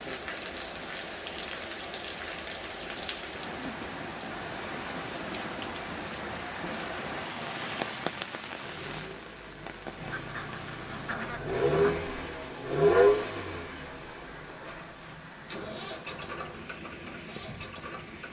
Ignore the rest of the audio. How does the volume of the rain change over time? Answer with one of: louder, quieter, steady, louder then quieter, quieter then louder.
quieter.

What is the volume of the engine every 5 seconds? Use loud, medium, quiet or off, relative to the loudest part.
off, quiet, loud, quiet.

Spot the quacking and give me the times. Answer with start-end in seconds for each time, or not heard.
10.0-12.0.